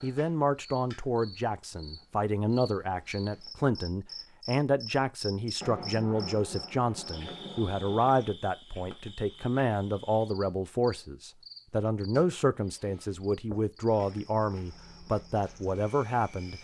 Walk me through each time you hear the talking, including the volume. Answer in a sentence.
You can hear the talking from 0.0 to 16.6 s, at a steady volume.